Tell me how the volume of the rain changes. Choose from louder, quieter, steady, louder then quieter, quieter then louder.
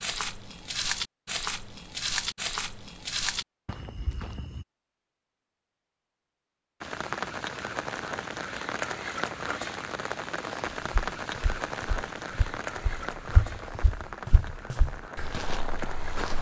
quieter.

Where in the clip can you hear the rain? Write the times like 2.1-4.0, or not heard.
6.8-16.3.